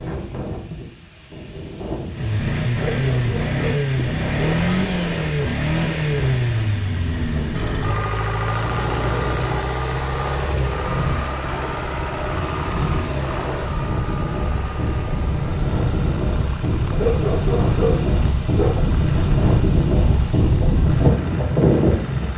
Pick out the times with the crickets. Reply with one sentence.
You can't hear the crickets here.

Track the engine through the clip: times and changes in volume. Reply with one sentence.
The engine can be heard from 2.1 to 22.3 s, getting quieter.